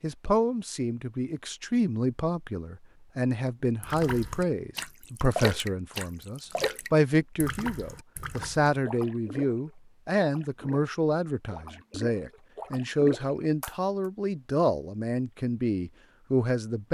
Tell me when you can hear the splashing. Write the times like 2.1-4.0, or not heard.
3.8-13.8.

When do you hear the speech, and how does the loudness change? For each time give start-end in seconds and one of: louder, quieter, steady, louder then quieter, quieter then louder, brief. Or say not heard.
0.0-16.8 steady.